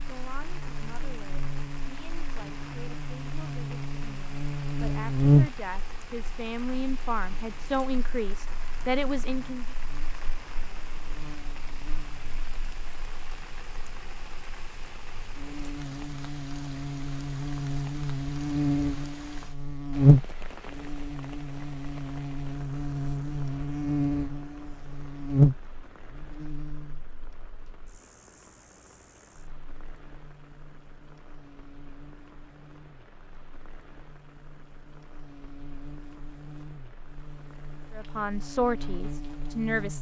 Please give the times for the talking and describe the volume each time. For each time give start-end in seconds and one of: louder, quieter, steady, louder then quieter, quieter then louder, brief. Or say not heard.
0.1-9.8 louder
37.9-39.9 brief.